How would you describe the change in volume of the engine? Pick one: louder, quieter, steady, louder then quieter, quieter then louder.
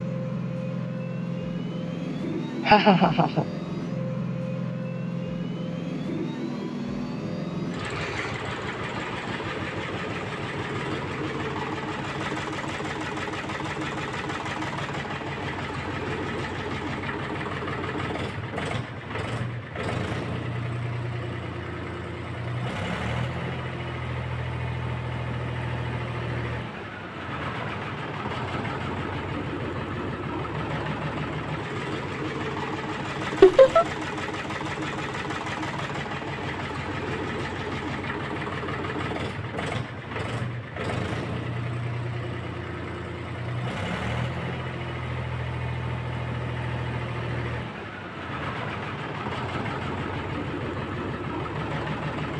steady.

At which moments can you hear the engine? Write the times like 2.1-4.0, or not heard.
0.0-52.3.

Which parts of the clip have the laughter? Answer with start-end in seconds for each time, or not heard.
2.6-3.5, 33.4-33.9.